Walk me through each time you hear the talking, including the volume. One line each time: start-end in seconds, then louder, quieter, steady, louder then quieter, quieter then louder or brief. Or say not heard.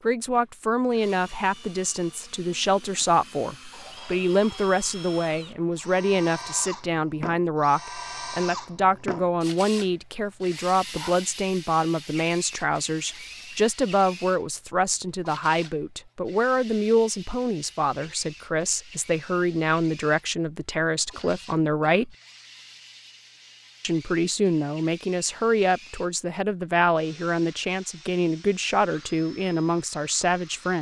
0.0-22.1 steady
23.8-30.7 steady.